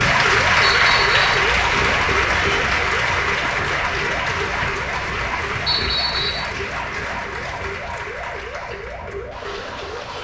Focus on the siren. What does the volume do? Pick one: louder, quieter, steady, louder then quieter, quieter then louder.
quieter.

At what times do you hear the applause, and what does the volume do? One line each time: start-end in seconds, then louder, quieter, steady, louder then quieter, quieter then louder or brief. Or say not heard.
0.0-10.1 quieter.